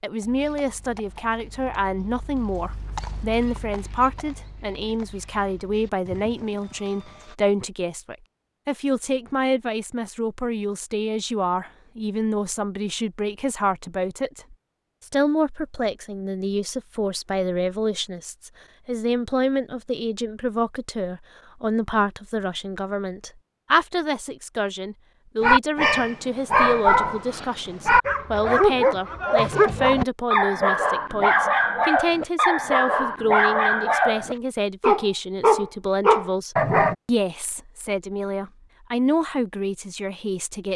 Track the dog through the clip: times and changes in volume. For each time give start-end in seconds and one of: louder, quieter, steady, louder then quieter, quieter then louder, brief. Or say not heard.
25.4-37.0 steady.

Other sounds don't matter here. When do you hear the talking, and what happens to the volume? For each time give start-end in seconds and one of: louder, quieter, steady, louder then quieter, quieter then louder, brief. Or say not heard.
0.0-40.7 steady.